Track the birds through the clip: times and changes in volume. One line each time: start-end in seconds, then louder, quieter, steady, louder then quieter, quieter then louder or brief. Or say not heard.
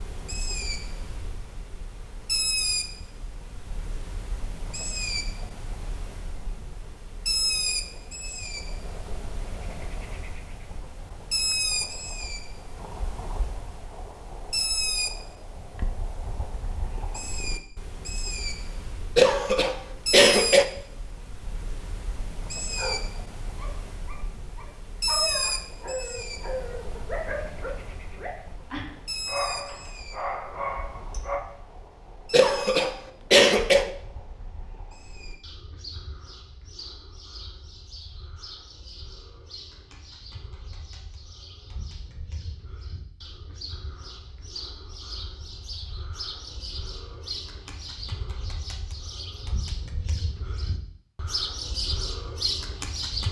0.0-53.2 quieter then louder.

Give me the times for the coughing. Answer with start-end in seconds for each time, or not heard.
19.1-20.6, 32.3-33.9.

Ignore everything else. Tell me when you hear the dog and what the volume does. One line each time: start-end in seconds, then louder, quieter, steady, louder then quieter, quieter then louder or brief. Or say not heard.
22.7-31.4 louder.